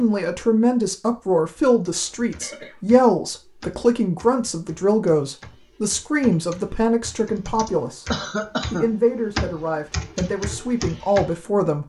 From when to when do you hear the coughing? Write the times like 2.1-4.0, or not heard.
1.9-2.8, 8.1-8.9.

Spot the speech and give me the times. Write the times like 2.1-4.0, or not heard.
0.0-8.1, 8.7-11.8.